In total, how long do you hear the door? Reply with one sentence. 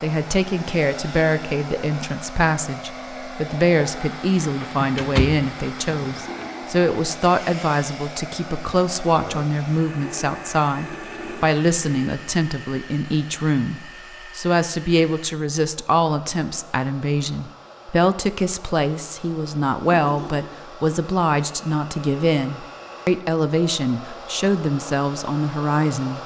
The door can be heard for 2 seconds in total.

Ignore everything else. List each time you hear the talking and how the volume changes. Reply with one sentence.
The talking can be heard from 0.0 to 26.2 s, at a steady volume.